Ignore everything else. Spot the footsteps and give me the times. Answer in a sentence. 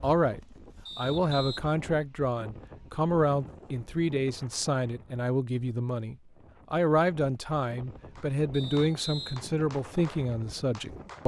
You can't hear the footsteps here.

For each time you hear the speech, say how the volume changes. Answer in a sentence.
The speech can be heard from 0.0 to 11.2 s, at a steady volume.